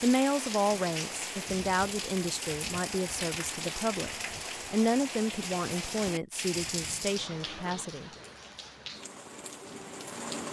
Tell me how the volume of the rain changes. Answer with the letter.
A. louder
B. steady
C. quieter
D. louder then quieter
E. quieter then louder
C.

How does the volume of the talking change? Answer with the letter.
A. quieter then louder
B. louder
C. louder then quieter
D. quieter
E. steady
D.